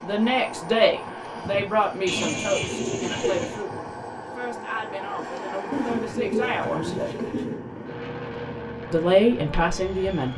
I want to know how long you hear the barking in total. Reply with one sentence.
The barking can't be heard in this clip.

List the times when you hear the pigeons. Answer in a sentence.
The pigeons can be heard from 2.0 to 3.6 s and from 5.7 to 7.7 s.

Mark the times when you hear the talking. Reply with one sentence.
The talking can be heard from 0.0 to 7.0 s and from 8.9 to 10.3 s.